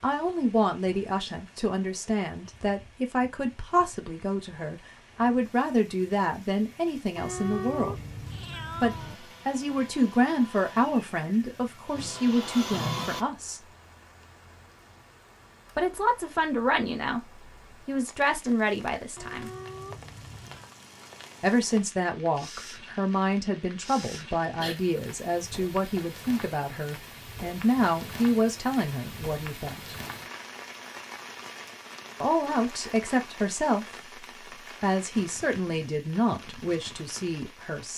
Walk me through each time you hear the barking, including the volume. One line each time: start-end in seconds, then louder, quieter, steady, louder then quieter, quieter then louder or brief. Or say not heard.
not heard.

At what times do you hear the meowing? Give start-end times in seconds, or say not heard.
7.2-9.2, 19.1-20.7.